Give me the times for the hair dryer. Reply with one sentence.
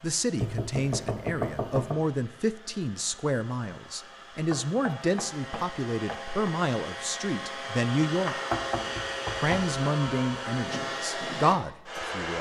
You can hear the hair dryer from 0.0 to 12.3 s.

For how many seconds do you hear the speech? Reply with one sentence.
You can hear the speech for 11 seconds altogether.